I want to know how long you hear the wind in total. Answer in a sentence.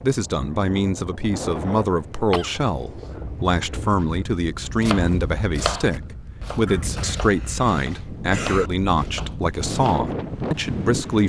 The wind can be heard for 11 seconds in total.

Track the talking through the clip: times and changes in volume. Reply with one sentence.
The talking can be heard from 0.0 to 11.2 s, at a steady volume.